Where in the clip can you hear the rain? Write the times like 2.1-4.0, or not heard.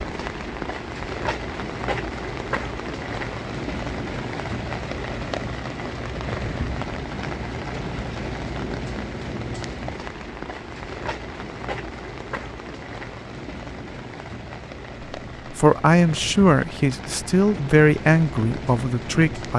0.0-19.5.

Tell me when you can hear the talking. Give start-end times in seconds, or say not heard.
15.5-19.5.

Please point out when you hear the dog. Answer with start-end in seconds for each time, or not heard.
not heard.